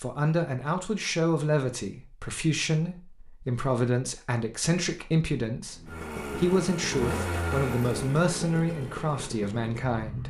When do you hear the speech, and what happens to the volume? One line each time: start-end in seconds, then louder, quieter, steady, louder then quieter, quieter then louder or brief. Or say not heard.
0.0-10.2 steady.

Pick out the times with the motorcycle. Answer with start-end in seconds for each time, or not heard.
5.7-10.2.